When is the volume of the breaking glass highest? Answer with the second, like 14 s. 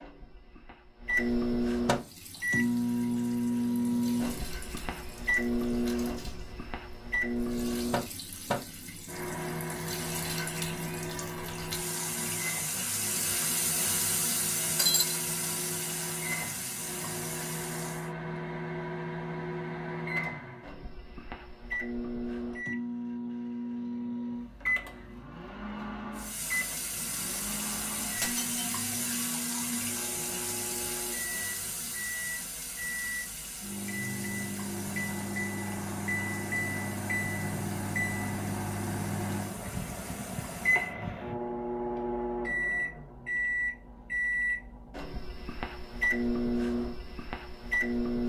15 s.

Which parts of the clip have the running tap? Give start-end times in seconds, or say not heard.
1.9-18.1, 26.1-41.0.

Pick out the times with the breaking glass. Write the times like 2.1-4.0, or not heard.
14.8-15.2, 28.1-28.6.